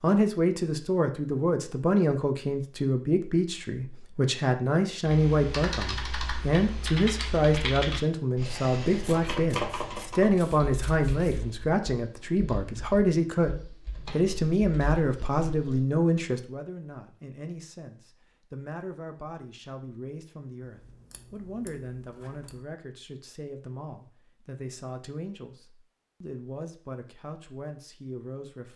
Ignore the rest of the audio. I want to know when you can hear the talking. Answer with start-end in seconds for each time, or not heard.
0.0-28.7.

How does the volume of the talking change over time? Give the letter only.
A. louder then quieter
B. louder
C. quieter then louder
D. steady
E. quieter
E.